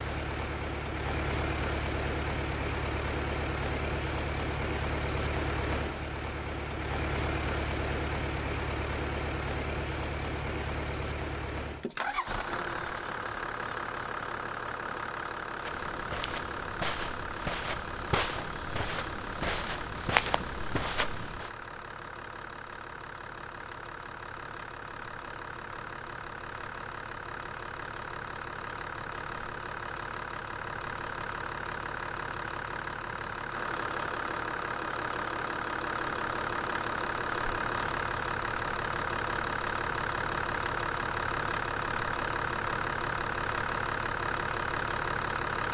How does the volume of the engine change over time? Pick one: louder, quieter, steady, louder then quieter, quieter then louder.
quieter then louder.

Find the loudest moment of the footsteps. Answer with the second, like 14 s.
20 s.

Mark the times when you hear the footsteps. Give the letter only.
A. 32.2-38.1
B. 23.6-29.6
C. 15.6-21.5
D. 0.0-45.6
C.